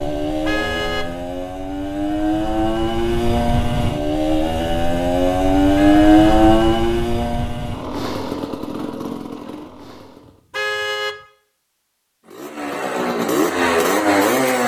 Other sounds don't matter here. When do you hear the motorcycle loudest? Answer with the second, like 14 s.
6 s.